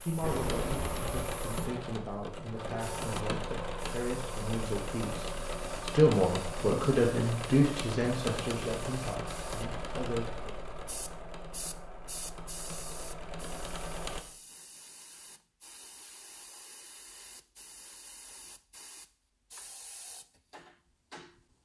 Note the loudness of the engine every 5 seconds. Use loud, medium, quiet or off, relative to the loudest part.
loud, loud, medium, off, off.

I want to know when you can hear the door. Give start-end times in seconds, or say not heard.
0.2-1.2.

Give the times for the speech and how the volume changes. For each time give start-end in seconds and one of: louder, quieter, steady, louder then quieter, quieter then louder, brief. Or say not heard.
0.0-10.6 louder then quieter.